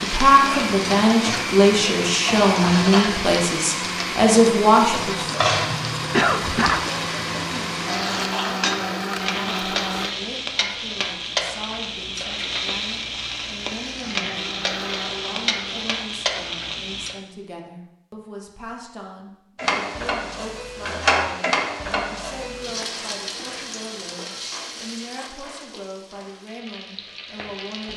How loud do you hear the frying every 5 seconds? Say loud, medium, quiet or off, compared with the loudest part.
loud, loud, loud, loud, loud, quiet.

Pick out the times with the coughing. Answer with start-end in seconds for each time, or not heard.
5.7-6.9.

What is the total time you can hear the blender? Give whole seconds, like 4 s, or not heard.
12 s.